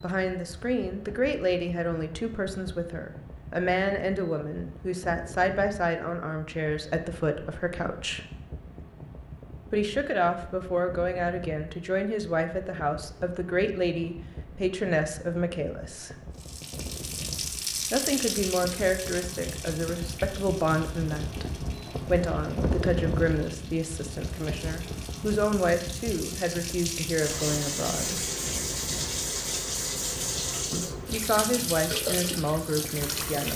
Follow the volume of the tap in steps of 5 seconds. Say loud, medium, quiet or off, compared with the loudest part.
off, off, off, loud, quiet, loud, loud.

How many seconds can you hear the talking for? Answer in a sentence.
The talking can be heard for 28 seconds in total.